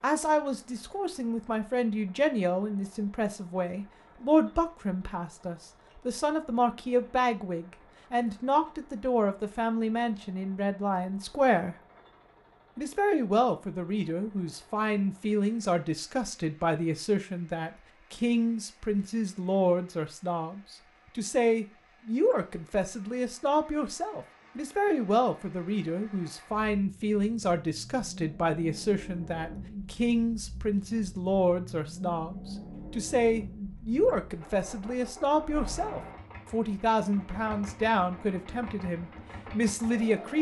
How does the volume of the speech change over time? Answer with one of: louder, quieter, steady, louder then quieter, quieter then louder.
steady.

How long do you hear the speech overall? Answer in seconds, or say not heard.
39 s.